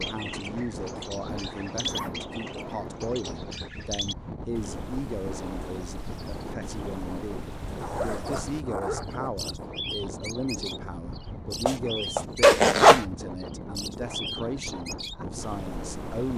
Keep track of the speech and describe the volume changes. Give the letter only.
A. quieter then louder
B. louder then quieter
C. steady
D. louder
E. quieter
C.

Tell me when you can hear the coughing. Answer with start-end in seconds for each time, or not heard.
not heard.